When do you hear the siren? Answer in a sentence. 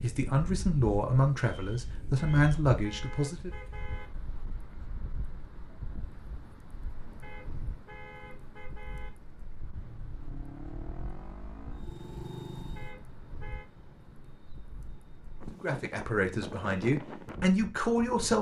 You can't hear the siren here.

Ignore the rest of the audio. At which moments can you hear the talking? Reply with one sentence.
The talking can be heard from 0.0 to 3.5 s and from 15.6 to 18.3 s.